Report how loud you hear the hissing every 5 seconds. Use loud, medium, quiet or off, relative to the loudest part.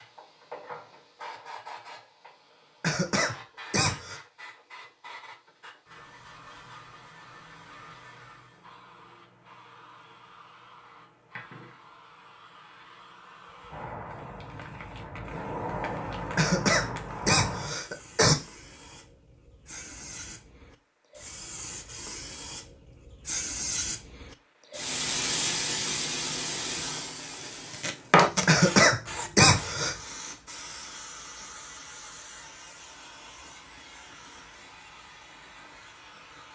quiet, quiet, quiet, medium, medium, loud, quiet, quiet.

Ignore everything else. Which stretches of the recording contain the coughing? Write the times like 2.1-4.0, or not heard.
2.8-4.2, 16.4-18.4, 28.4-29.9.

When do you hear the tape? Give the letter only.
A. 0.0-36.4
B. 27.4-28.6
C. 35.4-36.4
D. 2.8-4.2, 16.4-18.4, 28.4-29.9
B.